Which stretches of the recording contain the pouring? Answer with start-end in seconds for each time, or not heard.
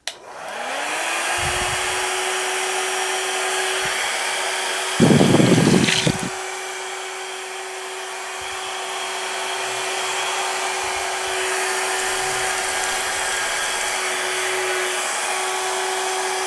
5.0-6.3, 11.9-14.0.